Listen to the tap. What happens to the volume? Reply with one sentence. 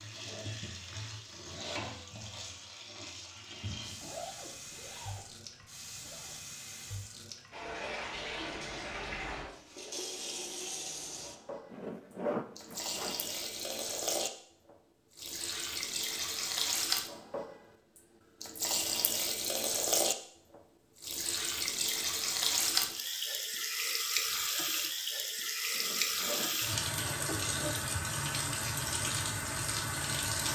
The loudness of the tap goes up.